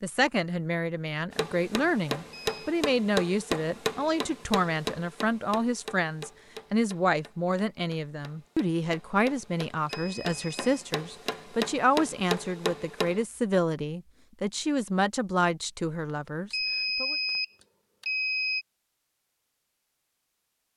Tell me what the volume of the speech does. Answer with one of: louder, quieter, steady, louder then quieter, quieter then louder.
steady.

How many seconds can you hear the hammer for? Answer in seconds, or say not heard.
12 s.